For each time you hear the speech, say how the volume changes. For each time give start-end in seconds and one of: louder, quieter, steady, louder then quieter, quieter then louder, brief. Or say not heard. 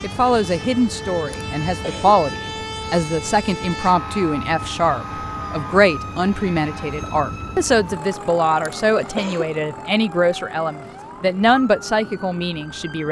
0.0-13.0 steady.